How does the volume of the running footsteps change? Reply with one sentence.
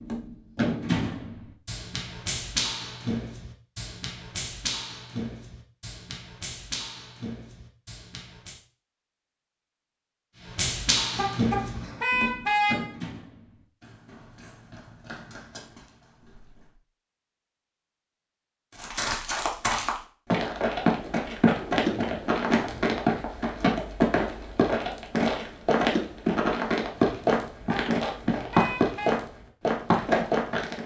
The volume of the running footsteps goes up.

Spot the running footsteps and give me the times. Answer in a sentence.
You can hear the running footsteps from 0.0 to 8.6 s, from 10.4 to 16.8 s and from 18.8 to 30.8 s.